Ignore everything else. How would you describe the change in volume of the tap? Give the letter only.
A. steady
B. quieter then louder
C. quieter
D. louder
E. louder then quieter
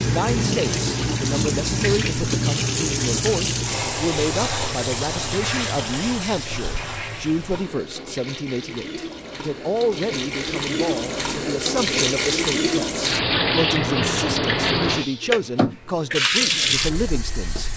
B.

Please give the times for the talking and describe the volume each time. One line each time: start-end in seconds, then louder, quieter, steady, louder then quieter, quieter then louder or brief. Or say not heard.
0.0-17.7 steady.